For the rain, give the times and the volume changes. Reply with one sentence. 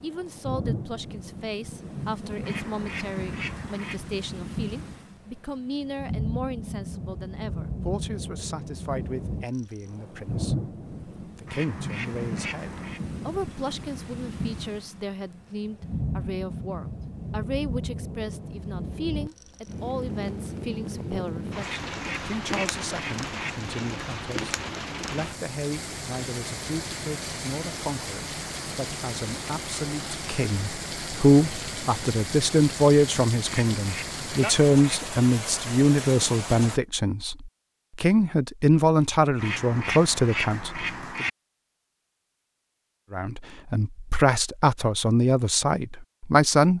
You can hear the rain from 0.0 to 36.8 s, at a steady volume.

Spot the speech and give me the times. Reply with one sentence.
You can hear the speech from 0.0 to 41.2 s and from 43.1 to 46.7 s.